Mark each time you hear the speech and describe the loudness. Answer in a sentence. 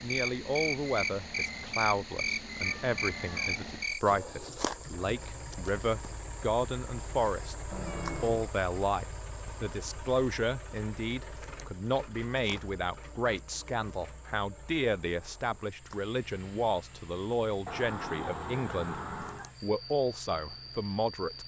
The speech can be heard from 0.0 to 19.0 s, at a steady volume; and briefly from 19.6 to 21.4 s.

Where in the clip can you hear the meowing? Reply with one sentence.
The meowing can be heard from 2.6 to 3.5 s, from 7.7 to 8.5 s and from 17.6 to 19.5 s.